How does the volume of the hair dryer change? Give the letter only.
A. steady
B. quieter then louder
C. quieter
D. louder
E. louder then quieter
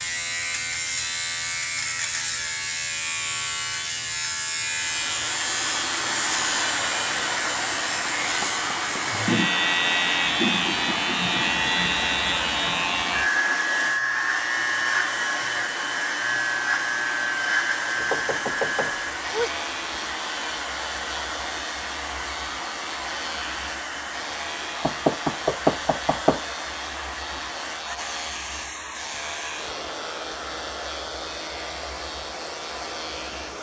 C.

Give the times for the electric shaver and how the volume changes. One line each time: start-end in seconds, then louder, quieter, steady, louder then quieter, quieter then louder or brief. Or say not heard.
0.0-33.5 quieter.